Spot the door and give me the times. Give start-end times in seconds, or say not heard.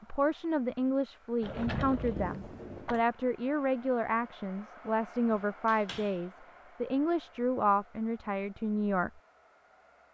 1.4-3.0, 5.3-6.2.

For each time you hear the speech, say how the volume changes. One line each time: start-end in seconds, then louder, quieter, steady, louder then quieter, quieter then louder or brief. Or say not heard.
0.0-9.1 steady.